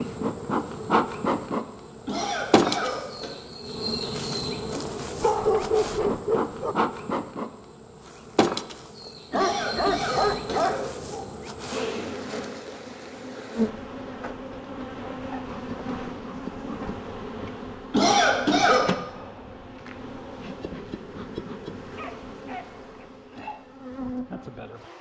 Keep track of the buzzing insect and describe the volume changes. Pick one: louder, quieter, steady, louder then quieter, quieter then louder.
quieter.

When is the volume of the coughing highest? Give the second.
18 s.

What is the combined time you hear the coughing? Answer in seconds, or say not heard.
4 s.